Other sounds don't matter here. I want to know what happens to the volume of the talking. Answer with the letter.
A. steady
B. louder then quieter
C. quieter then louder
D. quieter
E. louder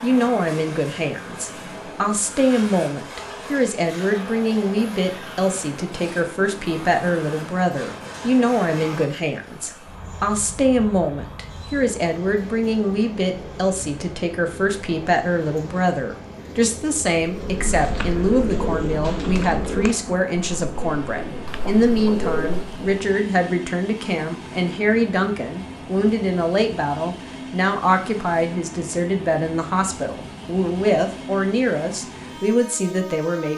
A.